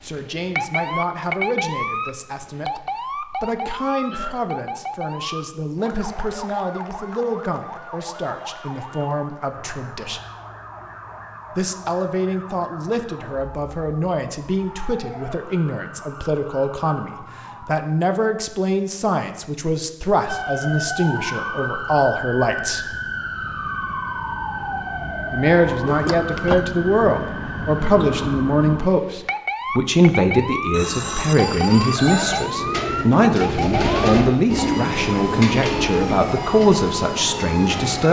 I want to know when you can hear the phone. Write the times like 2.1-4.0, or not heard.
30.7-32.5.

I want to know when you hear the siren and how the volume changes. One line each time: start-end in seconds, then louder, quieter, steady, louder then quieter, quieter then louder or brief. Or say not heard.
0.0-17.8 quieter
20.2-38.0 steady.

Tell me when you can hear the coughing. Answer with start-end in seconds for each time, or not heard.
4.1-4.5, 25.9-26.6.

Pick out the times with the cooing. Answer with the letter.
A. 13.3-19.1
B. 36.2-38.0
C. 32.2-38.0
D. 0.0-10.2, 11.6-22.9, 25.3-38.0
C.